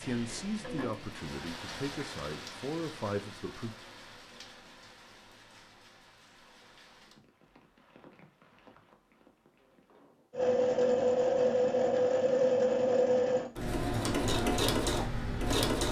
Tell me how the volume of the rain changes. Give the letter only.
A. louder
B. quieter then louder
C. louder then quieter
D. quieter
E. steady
D.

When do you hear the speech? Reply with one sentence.
You can hear the speech from 0.0 to 3.7 s.